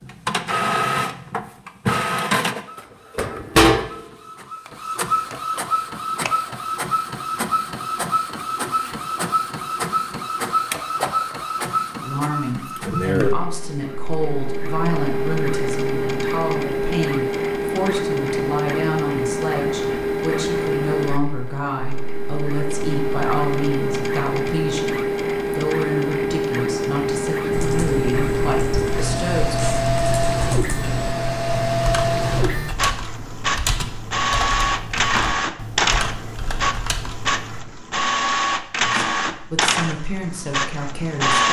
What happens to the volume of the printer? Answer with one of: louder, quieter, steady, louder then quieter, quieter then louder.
steady.